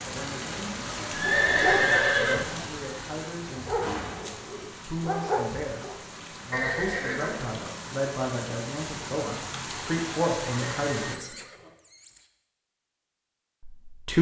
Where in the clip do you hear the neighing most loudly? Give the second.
2 s.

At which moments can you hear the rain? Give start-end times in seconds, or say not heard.
0.0-11.2.